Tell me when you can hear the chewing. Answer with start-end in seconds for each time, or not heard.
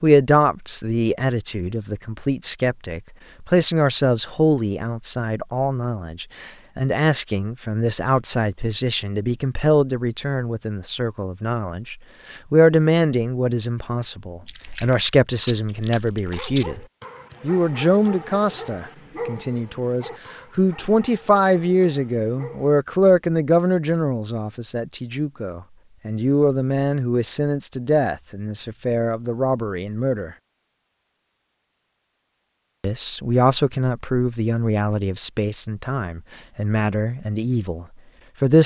14.4-16.6.